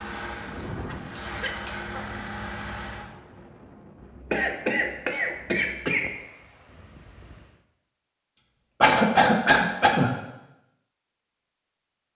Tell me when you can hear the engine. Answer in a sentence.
You can hear the engine from 0.0 to 3.1 s.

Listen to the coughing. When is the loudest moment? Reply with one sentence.
The loudest moment of the coughing is at 9 seconds.